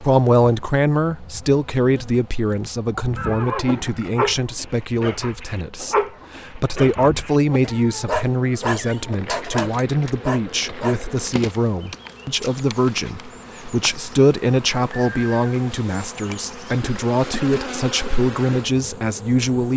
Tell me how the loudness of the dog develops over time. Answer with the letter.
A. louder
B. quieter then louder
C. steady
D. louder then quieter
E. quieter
B.